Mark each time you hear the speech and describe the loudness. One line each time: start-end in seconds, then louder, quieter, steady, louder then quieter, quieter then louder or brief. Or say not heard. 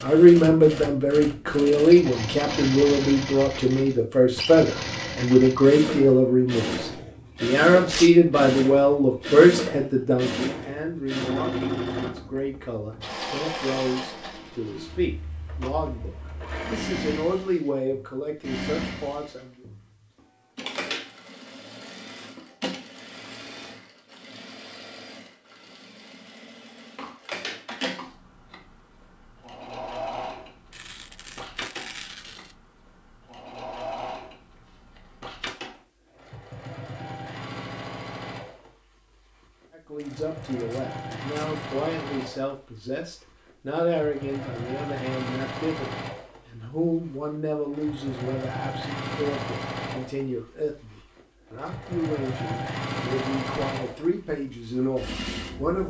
0.0-19.6 quieter
39.8-55.8 steady.